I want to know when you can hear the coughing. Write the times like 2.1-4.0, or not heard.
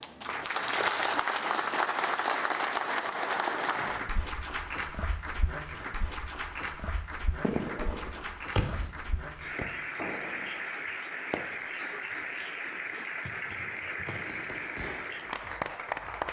not heard.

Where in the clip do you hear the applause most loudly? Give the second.
1 s.